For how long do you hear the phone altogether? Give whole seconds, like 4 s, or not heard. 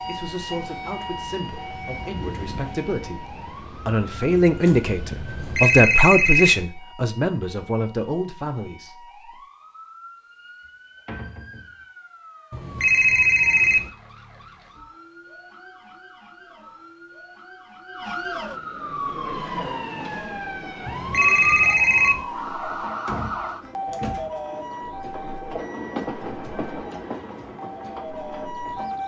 4 s.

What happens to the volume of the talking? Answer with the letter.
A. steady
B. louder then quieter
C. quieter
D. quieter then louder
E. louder
B.